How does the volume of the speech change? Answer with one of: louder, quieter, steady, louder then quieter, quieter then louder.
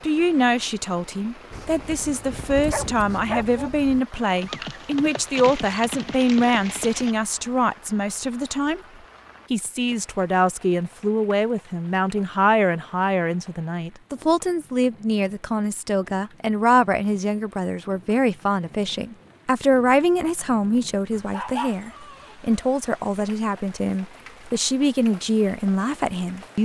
steady.